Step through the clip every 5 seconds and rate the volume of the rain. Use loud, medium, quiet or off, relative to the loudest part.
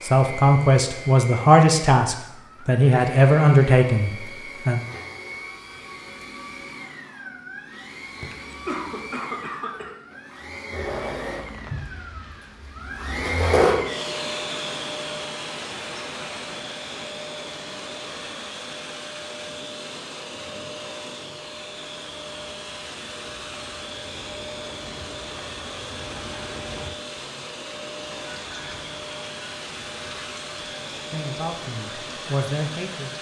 off, off, loud, loud, medium, loud, loud.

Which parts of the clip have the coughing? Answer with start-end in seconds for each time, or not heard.
8.2-9.9.